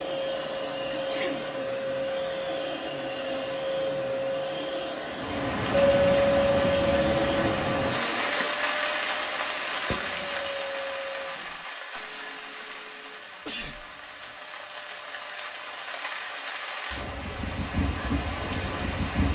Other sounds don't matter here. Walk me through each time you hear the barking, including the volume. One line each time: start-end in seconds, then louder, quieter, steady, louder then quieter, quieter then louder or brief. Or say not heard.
not heard.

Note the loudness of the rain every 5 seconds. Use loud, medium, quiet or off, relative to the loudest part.
off, loud, medium, loud.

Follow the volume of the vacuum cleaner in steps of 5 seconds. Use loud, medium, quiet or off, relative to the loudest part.
loud, loud, medium, quiet.